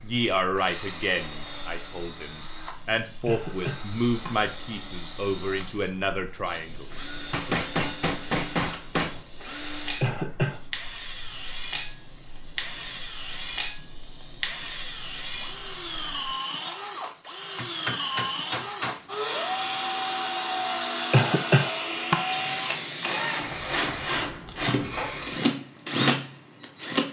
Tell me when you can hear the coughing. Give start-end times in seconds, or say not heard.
3.2-4.3, 10.0-10.6, 21.1-22.1.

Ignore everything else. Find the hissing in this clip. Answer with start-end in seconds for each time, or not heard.
0.0-16.4, 22.3-26.8.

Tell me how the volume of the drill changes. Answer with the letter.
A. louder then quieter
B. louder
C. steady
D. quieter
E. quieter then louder
B.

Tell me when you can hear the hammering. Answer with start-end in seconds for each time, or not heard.
7.3-9.2, 17.6-19.1.